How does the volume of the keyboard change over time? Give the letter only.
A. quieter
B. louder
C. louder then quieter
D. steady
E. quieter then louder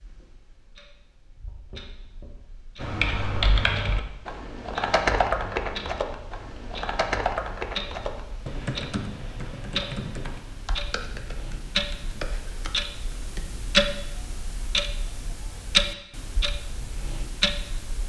A.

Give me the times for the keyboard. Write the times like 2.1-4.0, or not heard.
2.8-13.5.